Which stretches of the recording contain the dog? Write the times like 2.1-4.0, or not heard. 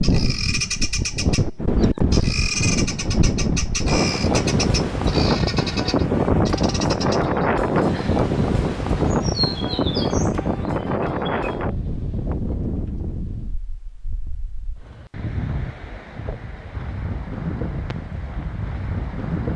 not heard.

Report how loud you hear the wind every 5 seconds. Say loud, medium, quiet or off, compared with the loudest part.
loud, loud, medium, medium.